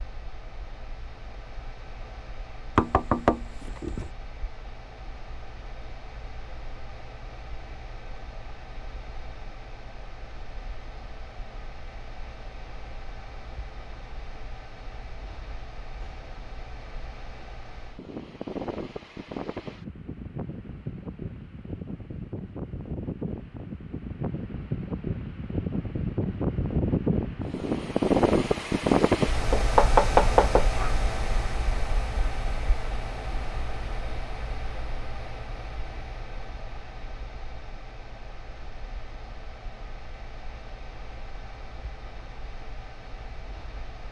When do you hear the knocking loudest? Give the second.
30 s.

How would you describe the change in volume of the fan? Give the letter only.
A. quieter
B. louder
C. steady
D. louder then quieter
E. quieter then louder
D.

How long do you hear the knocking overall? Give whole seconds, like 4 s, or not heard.
3 s.